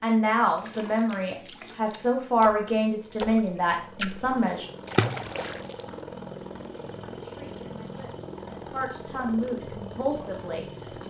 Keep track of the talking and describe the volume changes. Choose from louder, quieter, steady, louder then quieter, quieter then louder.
quieter then louder.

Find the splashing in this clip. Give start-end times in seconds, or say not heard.
0.5-6.0.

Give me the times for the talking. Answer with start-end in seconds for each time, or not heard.
0.0-4.7, 7.0-11.0.